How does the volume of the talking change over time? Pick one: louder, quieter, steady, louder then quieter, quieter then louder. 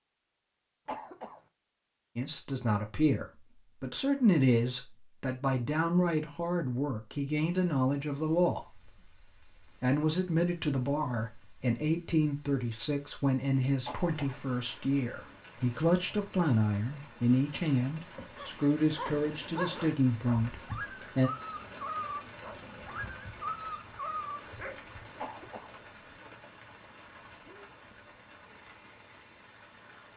steady.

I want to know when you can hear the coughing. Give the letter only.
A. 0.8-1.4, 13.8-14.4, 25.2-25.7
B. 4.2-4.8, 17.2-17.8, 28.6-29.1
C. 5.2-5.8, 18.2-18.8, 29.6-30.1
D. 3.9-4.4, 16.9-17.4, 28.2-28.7
A.